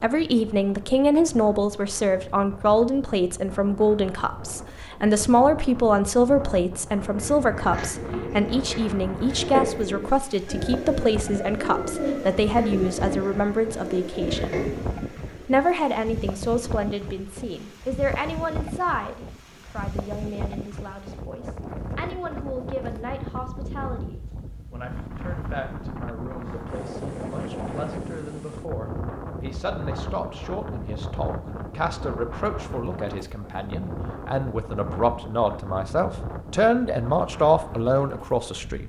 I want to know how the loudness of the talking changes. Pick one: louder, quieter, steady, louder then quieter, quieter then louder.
quieter then louder.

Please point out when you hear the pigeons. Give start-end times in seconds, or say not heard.
7.0-15.5.